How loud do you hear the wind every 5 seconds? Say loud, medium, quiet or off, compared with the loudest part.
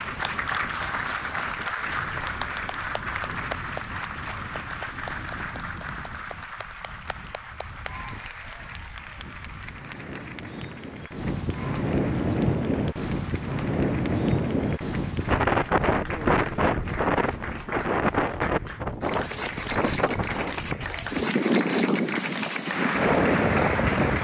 quiet, quiet, loud, loud, loud.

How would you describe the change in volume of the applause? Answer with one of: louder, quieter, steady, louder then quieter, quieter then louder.
quieter then louder.